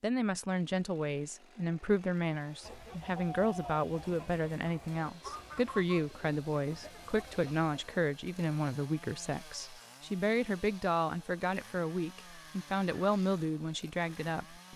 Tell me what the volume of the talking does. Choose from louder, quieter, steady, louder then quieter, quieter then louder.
steady.